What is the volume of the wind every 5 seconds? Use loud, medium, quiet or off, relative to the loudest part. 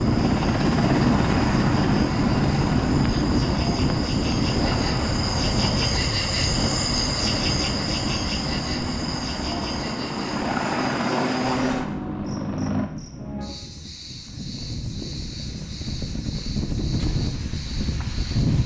loud, medium, quiet, medium.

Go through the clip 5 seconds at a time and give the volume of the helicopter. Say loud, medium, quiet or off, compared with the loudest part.
loud, medium, loud, off.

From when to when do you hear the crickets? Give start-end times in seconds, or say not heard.
0.0-18.6.